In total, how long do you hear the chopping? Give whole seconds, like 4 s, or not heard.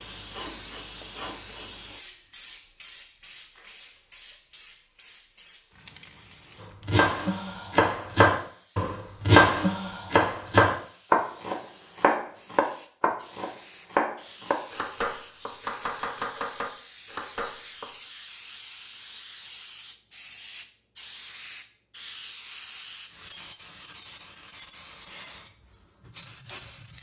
11 s.